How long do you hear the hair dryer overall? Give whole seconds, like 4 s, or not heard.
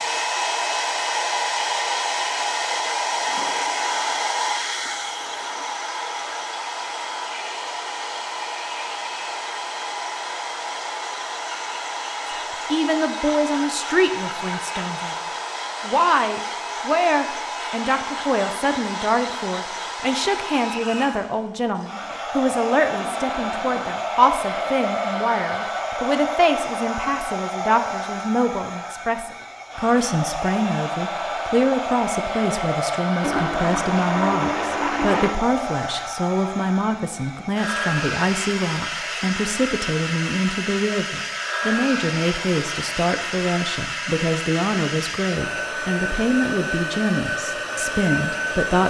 49 s.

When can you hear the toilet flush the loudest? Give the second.
35 s.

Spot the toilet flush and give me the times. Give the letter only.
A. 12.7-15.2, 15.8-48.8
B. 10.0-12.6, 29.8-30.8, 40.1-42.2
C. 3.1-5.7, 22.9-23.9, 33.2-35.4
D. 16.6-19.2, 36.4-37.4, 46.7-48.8
C.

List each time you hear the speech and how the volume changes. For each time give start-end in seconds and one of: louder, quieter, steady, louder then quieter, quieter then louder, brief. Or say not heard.
12.7-15.2 brief
15.8-48.8 steady.